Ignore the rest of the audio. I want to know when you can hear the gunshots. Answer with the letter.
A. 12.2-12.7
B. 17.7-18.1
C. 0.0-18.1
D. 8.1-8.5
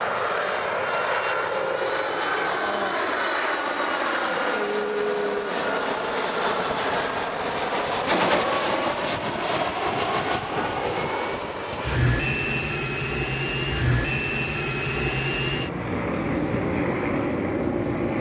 D.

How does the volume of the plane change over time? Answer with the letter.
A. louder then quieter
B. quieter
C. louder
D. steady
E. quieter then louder
D.